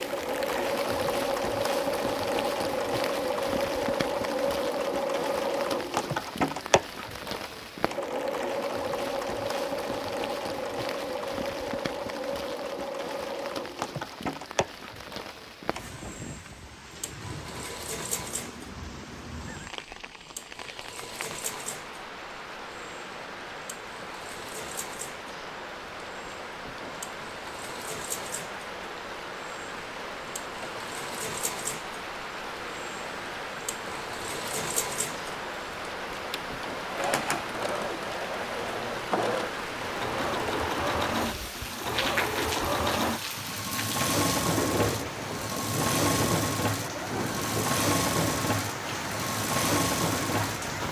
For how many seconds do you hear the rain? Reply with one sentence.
You can hear the rain for 51 seconds altogether.